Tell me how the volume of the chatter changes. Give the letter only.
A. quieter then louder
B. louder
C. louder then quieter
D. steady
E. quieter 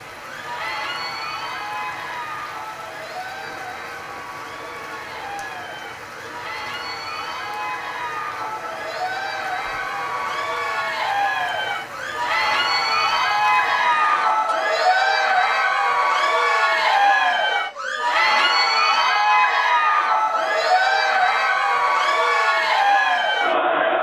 B.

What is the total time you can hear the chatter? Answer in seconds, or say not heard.
24 s.